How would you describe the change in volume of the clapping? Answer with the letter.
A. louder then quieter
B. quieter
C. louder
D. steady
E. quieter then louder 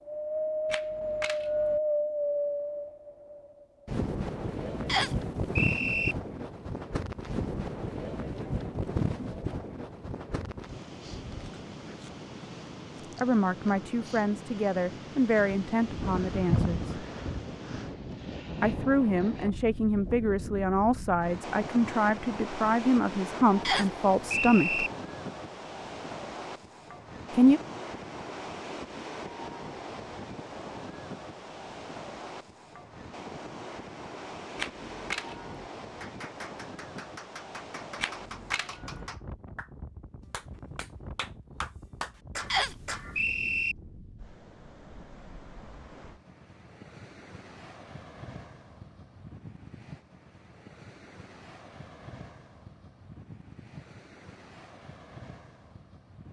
C.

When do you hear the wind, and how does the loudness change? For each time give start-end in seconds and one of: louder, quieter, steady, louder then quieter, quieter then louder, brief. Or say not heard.
0.0-56.2 quieter.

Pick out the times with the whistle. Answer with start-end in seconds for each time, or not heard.
4.8-6.2, 23.6-24.9, 42.5-43.8.